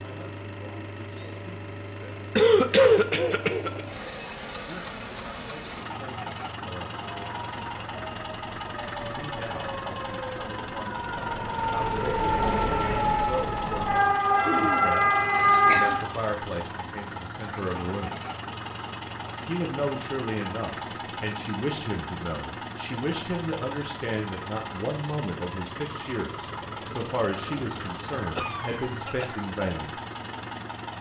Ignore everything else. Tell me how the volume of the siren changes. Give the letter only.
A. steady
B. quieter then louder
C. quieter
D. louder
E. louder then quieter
D.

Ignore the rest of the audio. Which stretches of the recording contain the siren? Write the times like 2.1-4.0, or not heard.
6.9-16.1.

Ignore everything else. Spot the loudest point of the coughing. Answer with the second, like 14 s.
3 s.